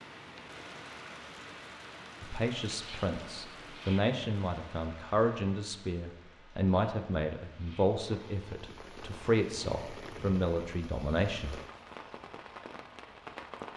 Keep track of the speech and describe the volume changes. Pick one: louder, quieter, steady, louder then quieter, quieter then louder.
steady.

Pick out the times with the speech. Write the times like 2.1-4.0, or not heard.
2.2-11.6.